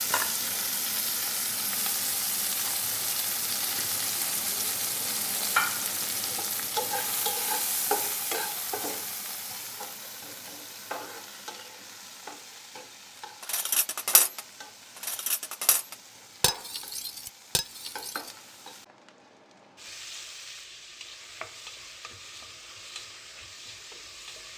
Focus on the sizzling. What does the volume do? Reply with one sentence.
The volume of the sizzling goes down.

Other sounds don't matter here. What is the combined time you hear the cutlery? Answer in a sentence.
The cutlery can be heard for 4 seconds in total.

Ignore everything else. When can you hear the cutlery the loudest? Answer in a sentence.
The volume of the cutlery peaks at 14 seconds.